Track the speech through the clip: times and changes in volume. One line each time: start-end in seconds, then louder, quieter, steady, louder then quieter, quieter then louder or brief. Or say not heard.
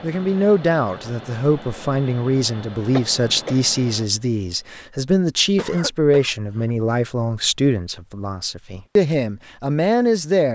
0.0-10.5 steady.